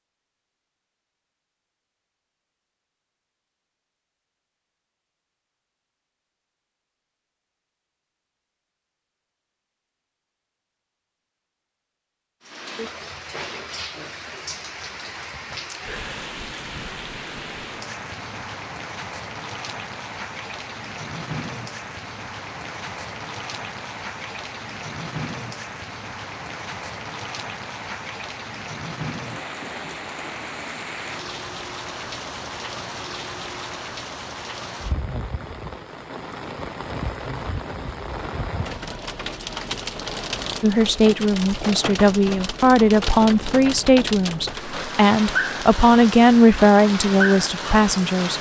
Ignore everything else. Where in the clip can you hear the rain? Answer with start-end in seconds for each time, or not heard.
12.4-48.3.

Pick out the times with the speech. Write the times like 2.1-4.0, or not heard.
40.6-48.3.